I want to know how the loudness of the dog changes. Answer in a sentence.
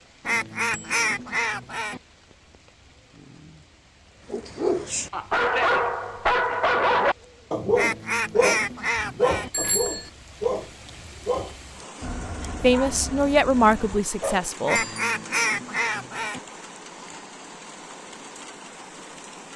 The volume of the dog goes down.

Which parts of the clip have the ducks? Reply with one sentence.
The ducks can be heard from 0.2 to 2.0 s, from 7.8 to 9.5 s and from 14.7 to 16.4 s.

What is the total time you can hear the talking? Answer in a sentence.
You can hear the talking for 2 seconds altogether.